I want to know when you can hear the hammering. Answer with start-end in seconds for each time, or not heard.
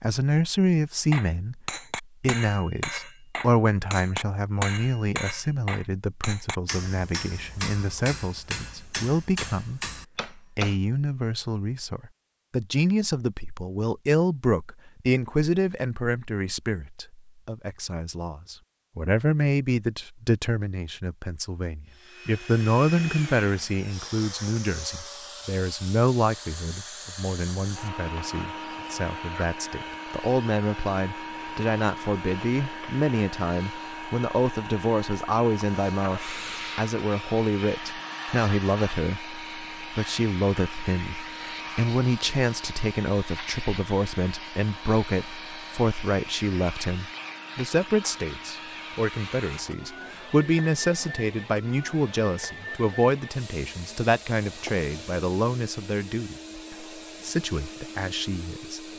1.1-10.8.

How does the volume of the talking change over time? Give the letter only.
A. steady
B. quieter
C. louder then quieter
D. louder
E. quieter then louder
A.